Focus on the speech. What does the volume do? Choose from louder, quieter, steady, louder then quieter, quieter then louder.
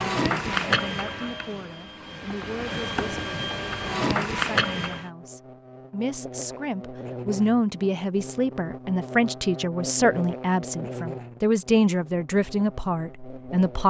louder.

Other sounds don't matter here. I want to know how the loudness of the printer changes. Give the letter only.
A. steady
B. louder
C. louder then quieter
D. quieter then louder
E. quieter
D.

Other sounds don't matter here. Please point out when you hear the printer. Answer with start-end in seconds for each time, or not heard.
0.0-5.1.